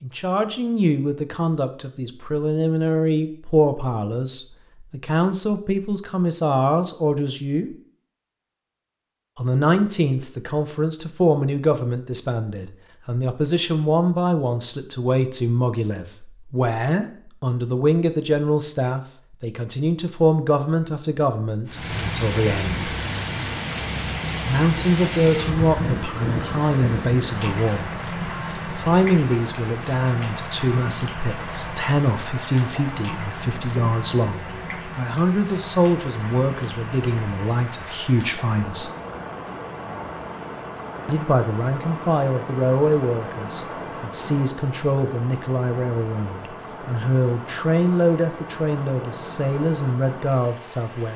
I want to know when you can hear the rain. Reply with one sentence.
The rain can be heard from 21.6 to 51.1 s.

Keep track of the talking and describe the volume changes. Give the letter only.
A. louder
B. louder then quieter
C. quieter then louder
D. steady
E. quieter
D.